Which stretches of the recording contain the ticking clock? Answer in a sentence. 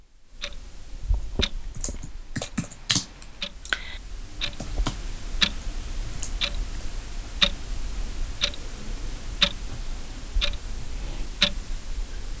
You can hear the ticking clock from 0.0 to 12.3 s.